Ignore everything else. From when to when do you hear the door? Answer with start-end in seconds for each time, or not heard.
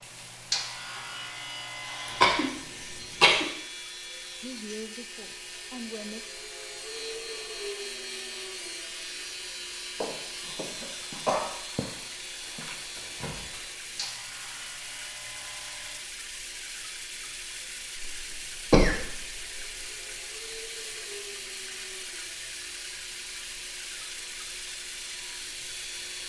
12.9-13.6.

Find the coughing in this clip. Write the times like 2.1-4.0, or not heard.
2.0-3.5, 10.4-11.5, 17.9-19.9.